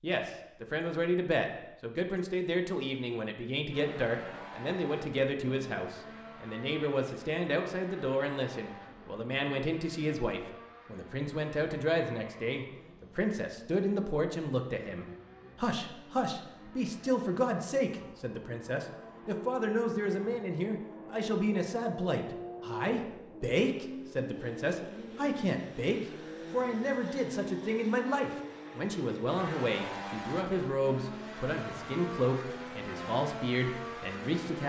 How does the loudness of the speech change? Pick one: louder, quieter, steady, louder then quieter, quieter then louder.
steady.